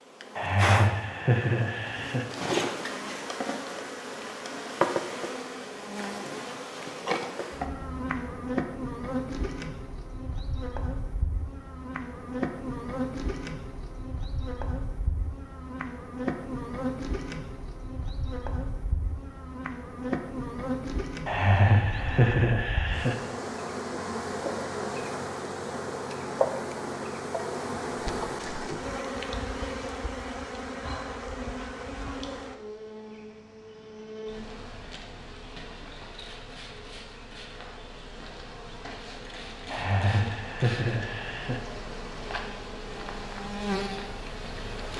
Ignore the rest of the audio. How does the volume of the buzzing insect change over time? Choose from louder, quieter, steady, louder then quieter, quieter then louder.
quieter.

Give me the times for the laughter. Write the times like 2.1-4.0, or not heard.
0.3-2.2, 21.2-23.1, 39.7-41.6.